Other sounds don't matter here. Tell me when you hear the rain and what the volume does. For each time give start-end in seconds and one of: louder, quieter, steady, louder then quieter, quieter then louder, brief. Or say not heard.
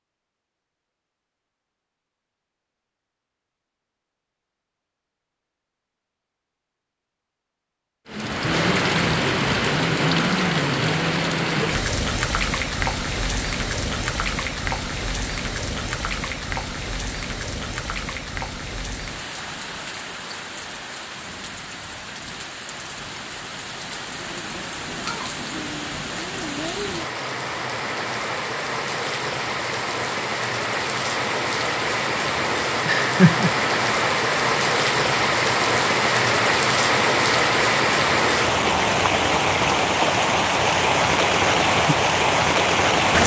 8.1-43.2 quieter then louder.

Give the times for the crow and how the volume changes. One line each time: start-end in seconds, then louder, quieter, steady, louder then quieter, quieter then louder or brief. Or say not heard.
not heard.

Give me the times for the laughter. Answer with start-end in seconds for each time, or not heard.
32.9-33.5.